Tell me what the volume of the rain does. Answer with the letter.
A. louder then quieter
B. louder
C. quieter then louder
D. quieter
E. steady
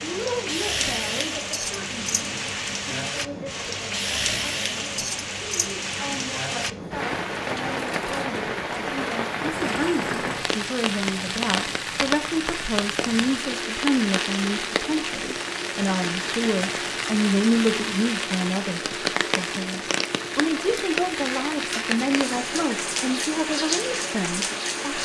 E.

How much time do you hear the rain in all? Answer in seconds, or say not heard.
25 s.